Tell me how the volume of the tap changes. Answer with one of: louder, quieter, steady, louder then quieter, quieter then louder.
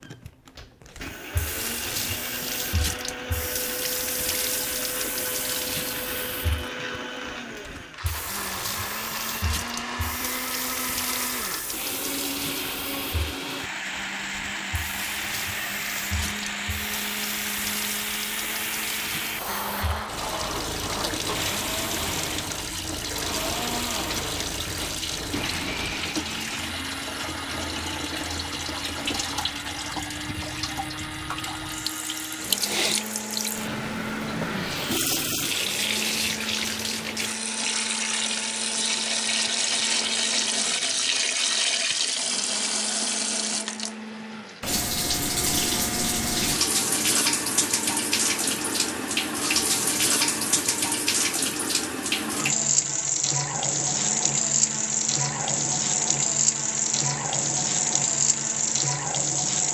louder.